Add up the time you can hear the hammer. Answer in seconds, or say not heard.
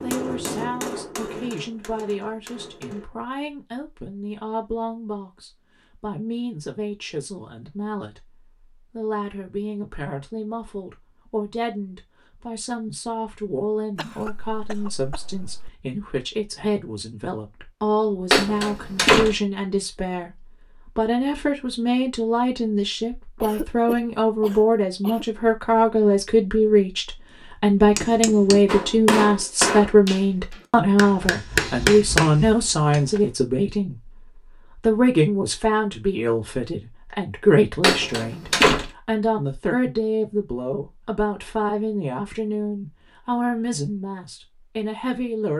8 s.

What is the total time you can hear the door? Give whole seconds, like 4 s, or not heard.
2 s.